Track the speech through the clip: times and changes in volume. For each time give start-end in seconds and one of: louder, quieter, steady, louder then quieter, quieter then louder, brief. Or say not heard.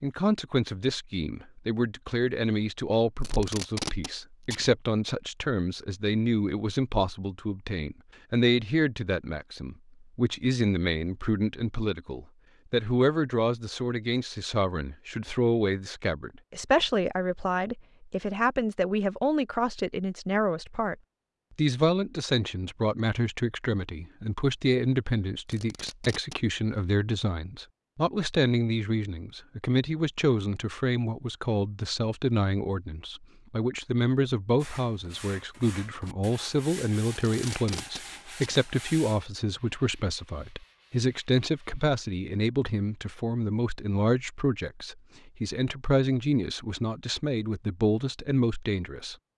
0.0-20.9 steady
21.6-49.1 steady.